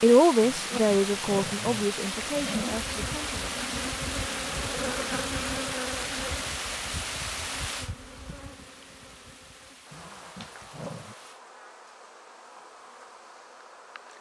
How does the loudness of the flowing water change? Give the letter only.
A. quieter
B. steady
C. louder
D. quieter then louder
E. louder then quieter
A.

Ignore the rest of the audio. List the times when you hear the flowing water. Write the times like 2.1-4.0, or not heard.
0.0-11.4.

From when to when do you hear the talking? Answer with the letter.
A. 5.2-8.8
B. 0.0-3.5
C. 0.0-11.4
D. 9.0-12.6
B.